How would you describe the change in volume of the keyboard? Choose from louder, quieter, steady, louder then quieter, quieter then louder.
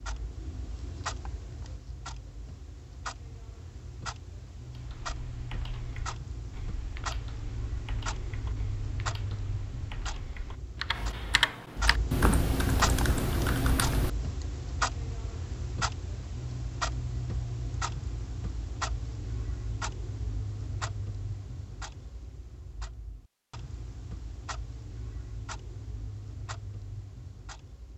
louder.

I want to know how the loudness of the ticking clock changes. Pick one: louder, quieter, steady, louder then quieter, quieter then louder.
louder then quieter.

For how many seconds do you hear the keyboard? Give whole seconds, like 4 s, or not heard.
10 s.